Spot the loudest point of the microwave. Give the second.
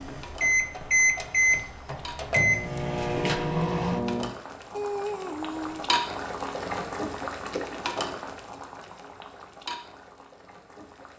1 s.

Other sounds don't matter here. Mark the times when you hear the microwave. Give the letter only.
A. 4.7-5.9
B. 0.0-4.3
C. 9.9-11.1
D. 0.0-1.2
B.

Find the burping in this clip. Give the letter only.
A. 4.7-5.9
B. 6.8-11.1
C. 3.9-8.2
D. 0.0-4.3
A.